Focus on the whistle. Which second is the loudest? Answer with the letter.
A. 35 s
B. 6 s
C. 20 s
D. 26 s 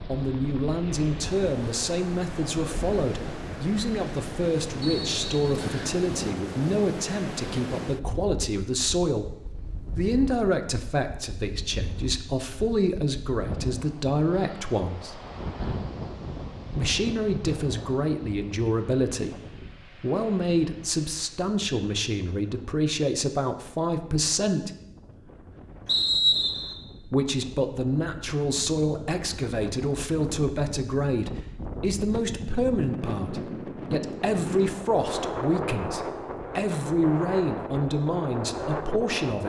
D.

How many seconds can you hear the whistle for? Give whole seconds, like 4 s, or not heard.
2 s.